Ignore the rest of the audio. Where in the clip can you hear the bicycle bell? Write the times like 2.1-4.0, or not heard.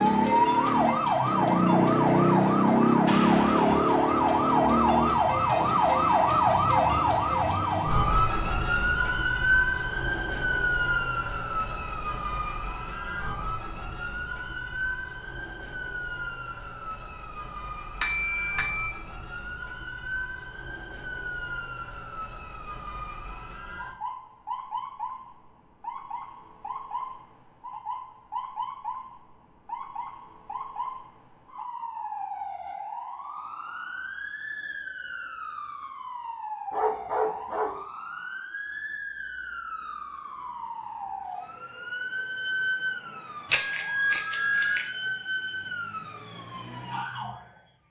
18.0-18.9, 43.5-44.9.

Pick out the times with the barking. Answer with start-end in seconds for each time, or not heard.
36.7-37.8.